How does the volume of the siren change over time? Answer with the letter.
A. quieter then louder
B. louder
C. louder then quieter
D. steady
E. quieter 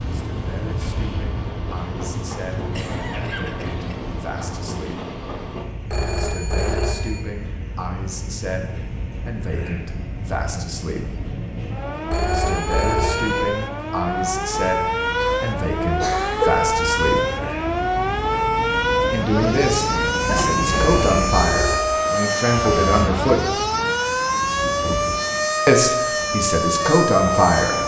B.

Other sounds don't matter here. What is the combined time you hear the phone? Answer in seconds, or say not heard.
4 s.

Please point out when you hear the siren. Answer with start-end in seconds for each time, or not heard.
0.0-27.8.